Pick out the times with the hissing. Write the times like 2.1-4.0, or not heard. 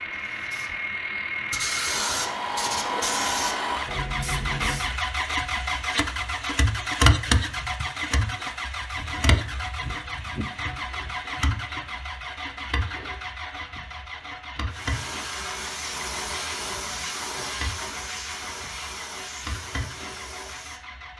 0.0-5.0, 14.7-20.8.